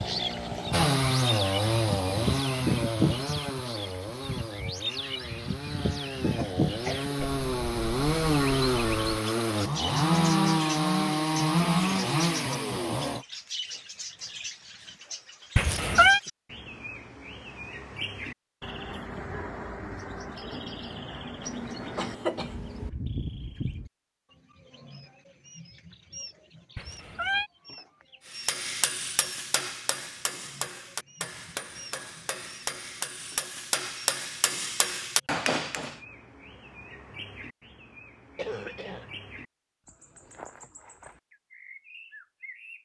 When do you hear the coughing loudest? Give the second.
22 s.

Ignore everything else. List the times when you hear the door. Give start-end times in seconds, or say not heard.
not heard.